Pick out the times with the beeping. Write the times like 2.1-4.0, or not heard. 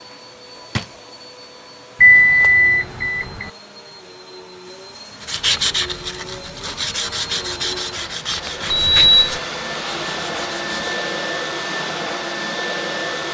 2.0-3.5, 8.7-9.4.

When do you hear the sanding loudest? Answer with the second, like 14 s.
6 s.